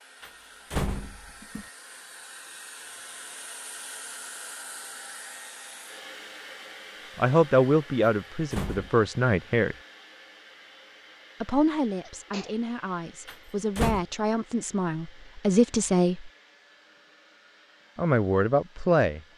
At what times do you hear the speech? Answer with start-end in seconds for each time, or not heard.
7.2-9.8, 11.4-16.3, 17.9-19.2.